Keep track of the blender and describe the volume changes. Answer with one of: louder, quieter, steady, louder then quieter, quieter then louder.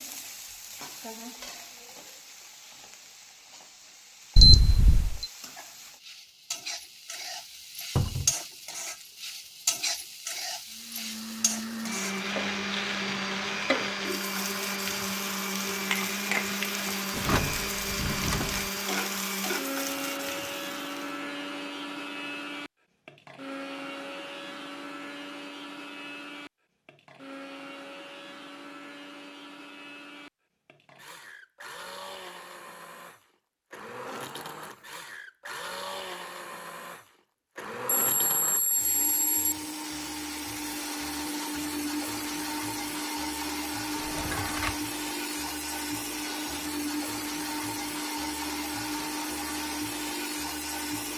quieter then louder.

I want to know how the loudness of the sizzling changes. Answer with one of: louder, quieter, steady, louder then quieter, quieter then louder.
louder.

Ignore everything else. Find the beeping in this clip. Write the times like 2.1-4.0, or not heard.
4.3-5.2, 38.0-39.5.